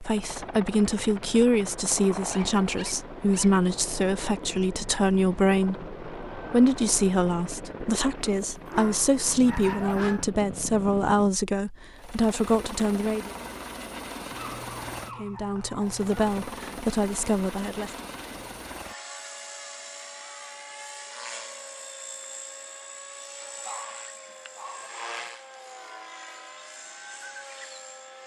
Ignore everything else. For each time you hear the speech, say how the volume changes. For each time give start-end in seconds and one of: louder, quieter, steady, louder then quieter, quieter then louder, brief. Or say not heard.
0.0-13.3 steady
15.2-17.9 brief.